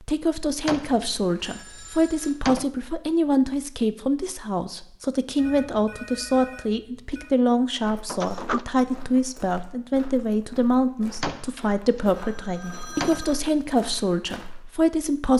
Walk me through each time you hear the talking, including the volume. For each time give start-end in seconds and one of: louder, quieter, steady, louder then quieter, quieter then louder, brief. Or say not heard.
0.0-15.3 steady.